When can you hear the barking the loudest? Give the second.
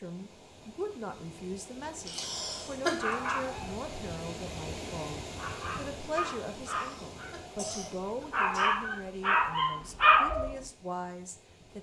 10 s.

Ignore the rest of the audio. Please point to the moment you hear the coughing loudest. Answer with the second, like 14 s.
3 s.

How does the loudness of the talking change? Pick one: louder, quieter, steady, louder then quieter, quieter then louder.
steady.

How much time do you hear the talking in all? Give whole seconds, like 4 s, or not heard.
12 s.